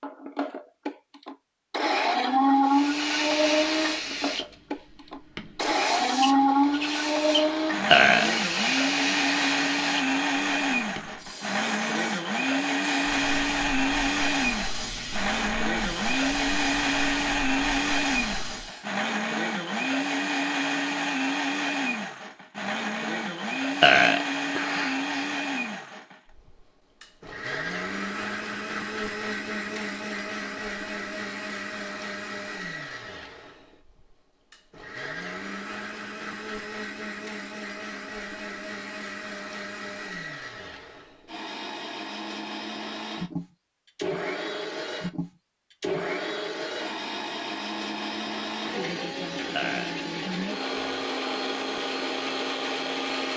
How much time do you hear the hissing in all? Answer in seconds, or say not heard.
16 s.